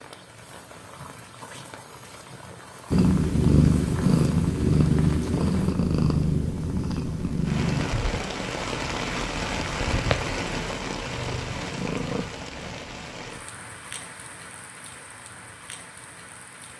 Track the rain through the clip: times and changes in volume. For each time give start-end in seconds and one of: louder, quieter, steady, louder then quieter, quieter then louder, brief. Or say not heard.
0.0-16.7 louder then quieter.